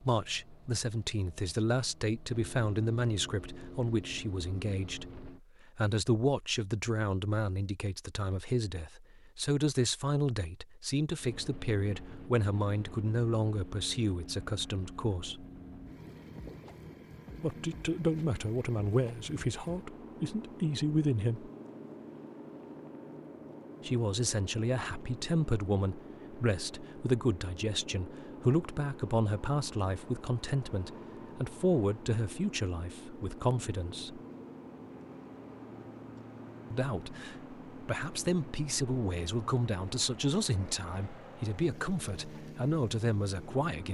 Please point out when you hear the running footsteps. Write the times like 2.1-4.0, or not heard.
not heard.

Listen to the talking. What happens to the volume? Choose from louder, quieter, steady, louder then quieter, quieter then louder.
steady.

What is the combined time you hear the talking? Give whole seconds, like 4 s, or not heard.
37 s.